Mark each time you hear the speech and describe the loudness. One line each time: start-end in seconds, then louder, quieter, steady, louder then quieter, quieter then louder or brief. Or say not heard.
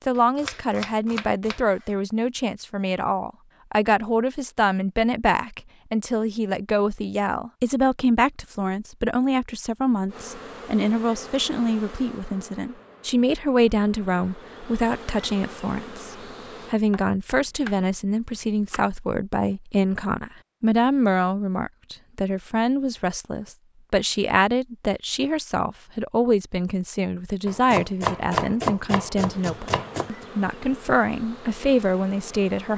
0.1-32.7 steady.